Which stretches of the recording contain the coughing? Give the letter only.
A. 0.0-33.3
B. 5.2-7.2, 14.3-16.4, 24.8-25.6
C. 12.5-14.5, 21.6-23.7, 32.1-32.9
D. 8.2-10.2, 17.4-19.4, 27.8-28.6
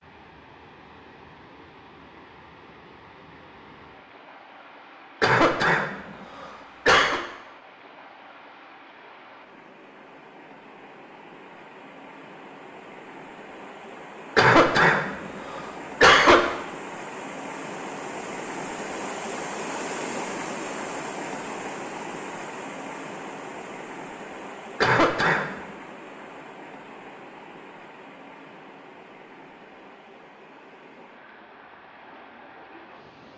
B.